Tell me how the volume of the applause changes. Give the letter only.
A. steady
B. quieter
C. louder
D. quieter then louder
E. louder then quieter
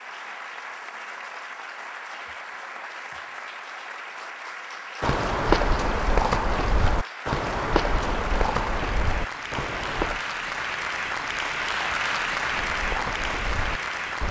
C.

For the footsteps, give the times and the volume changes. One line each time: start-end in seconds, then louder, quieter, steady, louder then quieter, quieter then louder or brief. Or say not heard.
5.0-10.2 quieter
12.4-14.2 brief.